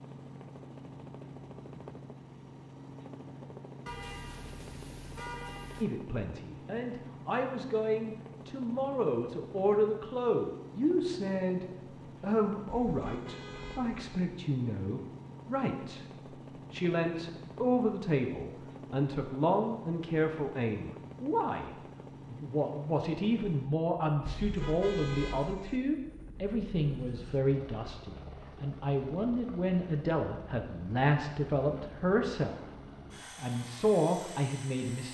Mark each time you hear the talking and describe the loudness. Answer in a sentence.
The talking can be heard from 5.8 to 32.6 s, at a steady volume; and briefly from 33.2 to 35.0 s.